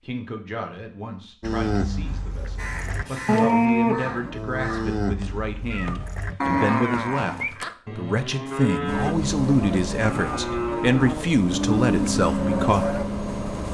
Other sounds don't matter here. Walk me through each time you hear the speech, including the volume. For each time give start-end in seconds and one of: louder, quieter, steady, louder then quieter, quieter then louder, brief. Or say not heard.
0.0-13.0 louder.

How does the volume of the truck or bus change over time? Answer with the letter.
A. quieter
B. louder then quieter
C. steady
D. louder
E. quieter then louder
E.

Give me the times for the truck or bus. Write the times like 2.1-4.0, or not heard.
8.8-13.7.